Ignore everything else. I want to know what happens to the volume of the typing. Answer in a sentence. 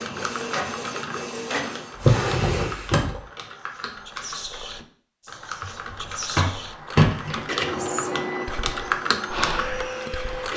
The loudness of the typing goes up.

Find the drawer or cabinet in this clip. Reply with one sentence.
You can hear the drawer or cabinet from 1.9 to 3.2 s and from 5.6 to 7.5 s.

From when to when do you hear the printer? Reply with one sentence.
You can hear the printer from 0.0 to 2.0 s and from 7.4 to 10.5 s.